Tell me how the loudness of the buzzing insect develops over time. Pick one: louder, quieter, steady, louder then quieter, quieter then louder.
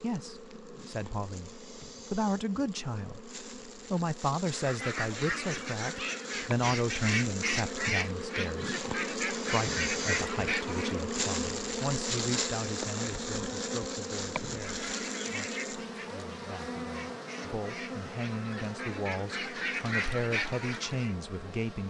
louder then quieter.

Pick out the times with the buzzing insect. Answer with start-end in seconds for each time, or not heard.
0.0-21.8.